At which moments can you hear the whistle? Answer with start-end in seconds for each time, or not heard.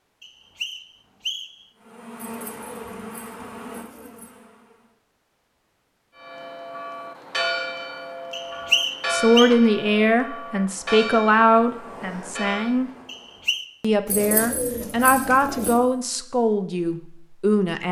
0.2-1.6, 8.3-9.5, 13.1-13.7.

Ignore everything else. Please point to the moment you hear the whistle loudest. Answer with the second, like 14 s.
9 s.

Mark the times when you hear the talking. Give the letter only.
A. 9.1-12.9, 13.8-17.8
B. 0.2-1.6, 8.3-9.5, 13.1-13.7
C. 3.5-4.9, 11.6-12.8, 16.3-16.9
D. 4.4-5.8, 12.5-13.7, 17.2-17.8
A.